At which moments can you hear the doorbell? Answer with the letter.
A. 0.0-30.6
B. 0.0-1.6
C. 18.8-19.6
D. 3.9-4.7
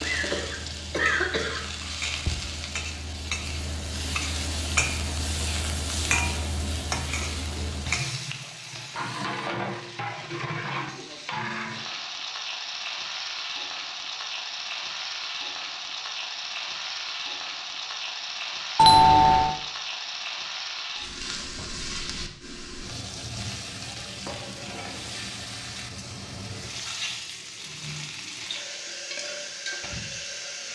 C.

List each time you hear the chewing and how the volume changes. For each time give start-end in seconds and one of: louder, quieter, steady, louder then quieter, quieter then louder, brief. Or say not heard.
not heard.